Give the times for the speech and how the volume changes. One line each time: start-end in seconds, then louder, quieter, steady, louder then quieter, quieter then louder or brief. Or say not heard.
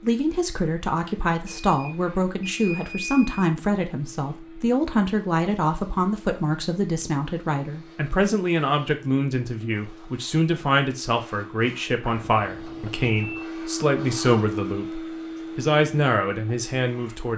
0.0-17.3 steady.